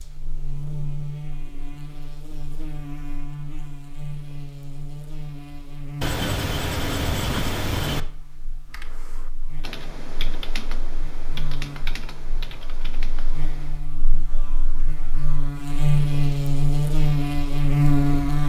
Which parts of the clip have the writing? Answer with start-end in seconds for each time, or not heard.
6.0-8.0.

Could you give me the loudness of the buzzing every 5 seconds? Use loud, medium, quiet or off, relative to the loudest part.
quiet, quiet, quiet, loud.